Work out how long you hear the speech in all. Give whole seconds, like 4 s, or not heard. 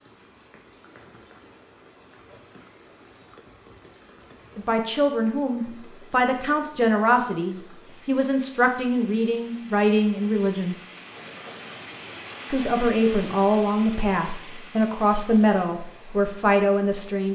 11 s.